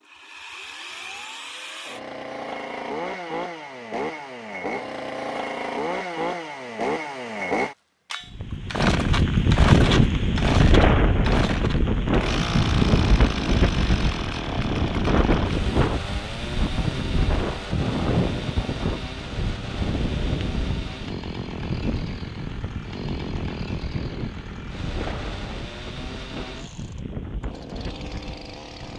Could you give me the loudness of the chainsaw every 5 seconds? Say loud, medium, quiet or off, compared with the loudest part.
medium, loud, loud, medium, medium, quiet.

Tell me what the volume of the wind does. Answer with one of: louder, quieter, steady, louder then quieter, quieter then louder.
quieter.